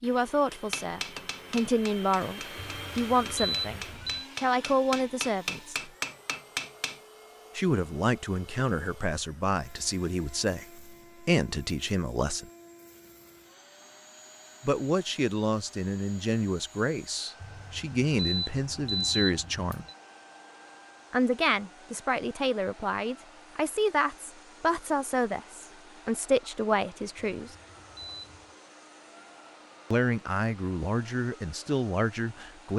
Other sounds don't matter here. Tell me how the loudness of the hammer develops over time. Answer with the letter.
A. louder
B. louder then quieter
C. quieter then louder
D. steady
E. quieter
C.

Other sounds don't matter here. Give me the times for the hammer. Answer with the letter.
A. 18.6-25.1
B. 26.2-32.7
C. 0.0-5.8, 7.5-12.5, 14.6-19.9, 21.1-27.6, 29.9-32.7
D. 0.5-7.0
D.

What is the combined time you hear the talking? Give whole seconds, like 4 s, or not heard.
25 s.